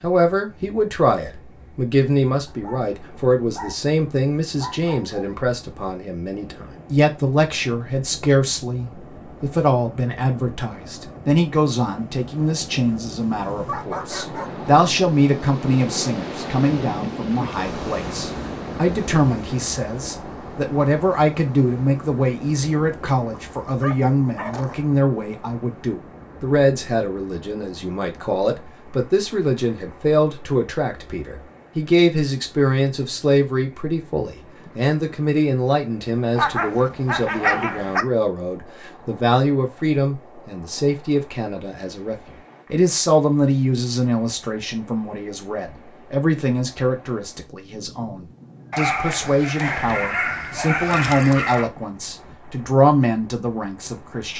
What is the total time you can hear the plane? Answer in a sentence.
You can't hear the plane here.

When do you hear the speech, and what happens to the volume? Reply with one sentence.
The speech can be heard from 0.0 to 54.3 s, at a steady volume.